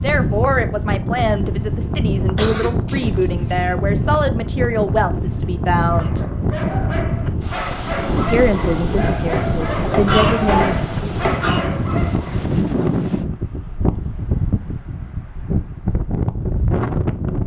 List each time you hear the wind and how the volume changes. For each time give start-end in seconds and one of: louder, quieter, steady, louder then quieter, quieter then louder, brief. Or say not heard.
0.0-17.4 steady.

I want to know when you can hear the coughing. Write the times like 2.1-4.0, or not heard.
2.4-3.7, 10.1-11.7.